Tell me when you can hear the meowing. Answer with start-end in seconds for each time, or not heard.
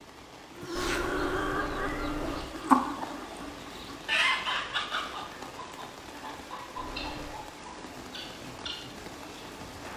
0.8-2.5, 6.8-7.5.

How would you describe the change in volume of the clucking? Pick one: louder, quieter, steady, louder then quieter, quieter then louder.
louder then quieter.